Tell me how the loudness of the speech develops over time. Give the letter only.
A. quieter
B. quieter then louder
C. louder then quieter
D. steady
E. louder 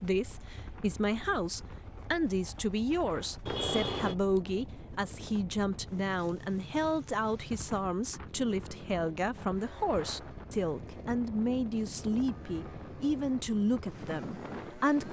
D.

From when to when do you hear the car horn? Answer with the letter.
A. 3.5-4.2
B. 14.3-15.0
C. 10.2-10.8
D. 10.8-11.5
A.